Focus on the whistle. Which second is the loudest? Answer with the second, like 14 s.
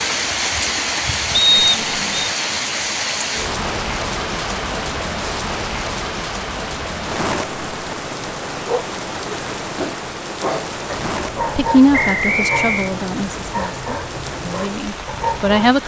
2 s.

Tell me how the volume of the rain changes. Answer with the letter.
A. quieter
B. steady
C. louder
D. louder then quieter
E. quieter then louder
A.